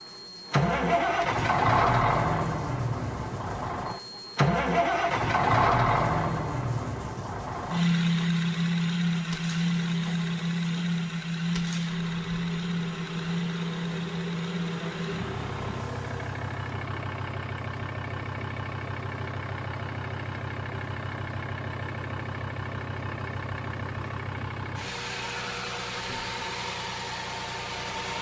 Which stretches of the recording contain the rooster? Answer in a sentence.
The rooster can't be heard in this clip.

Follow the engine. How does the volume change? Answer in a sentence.
The volume of the engine goes down.